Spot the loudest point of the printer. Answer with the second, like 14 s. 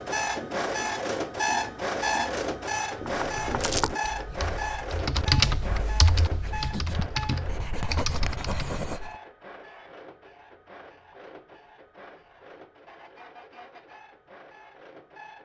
2 s.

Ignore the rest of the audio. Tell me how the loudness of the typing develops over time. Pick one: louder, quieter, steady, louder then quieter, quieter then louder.
louder then quieter.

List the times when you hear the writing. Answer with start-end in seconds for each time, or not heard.
0.0-9.2.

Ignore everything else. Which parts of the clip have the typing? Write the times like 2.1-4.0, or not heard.
3.0-8.8.